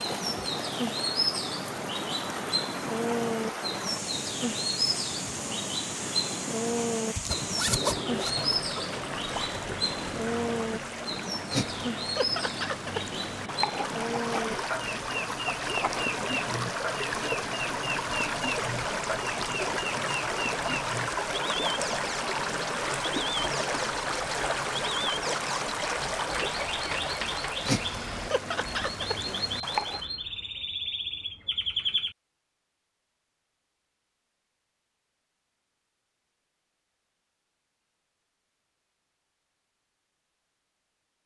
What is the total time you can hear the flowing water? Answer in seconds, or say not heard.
30 s.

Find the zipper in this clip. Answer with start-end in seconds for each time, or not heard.
7.2-8.6.